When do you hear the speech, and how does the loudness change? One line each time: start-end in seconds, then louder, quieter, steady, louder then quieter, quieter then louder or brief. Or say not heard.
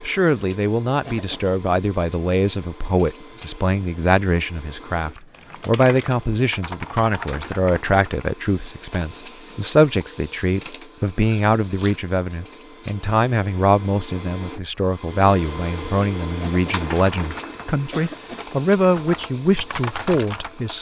0.0-20.7 steady.